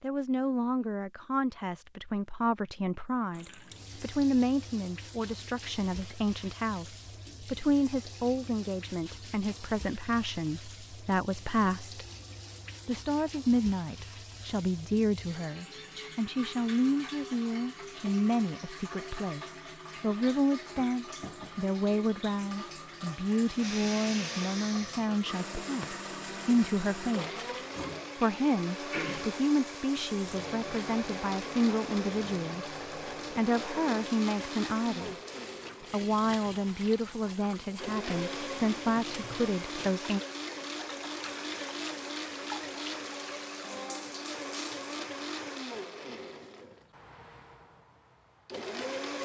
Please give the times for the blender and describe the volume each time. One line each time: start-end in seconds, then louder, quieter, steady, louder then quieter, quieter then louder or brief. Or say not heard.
23.4-49.2 steady.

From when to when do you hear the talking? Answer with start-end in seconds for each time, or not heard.
0.0-12.0, 12.8-27.4, 28.1-32.6, 33.3-35.1, 35.9-40.2.